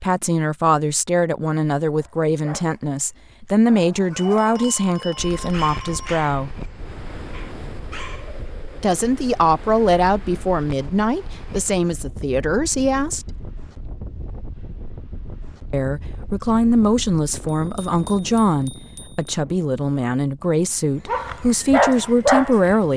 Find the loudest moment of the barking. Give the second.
22 s.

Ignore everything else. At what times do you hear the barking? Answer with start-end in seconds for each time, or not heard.
1.9-6.6, 7.3-8.5, 21.1-22.9.